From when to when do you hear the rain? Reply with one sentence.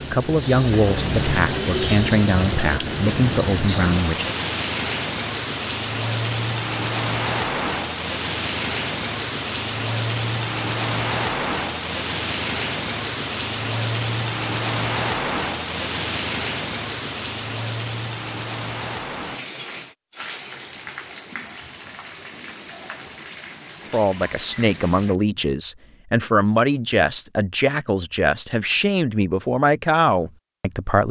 The rain can be heard from 0.0 to 25.2 s.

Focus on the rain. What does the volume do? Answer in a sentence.
The loudness of the rain goes down.